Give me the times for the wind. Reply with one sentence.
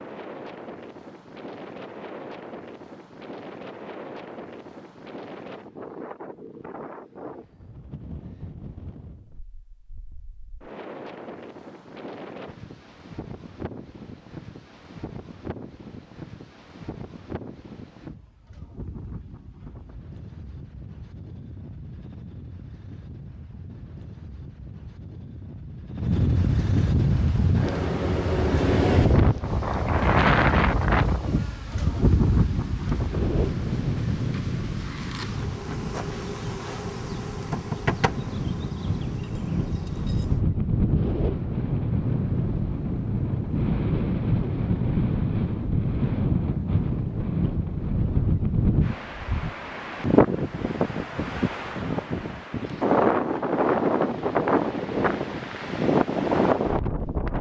The wind can be heard from 0.0 to 57.3 s.